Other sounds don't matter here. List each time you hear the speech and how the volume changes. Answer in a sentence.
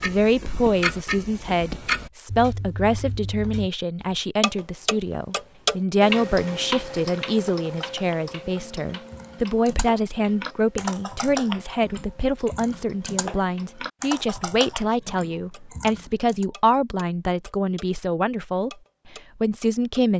You can hear the speech from 0.0 to 18.7 s, at a steady volume; and briefly from 19.4 to 20.1 s.